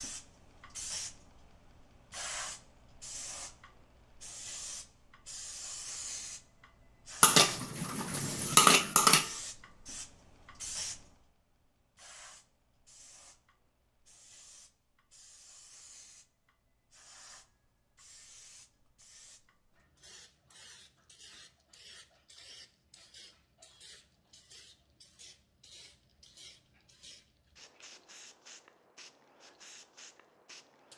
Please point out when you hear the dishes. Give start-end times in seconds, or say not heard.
7.2-9.3.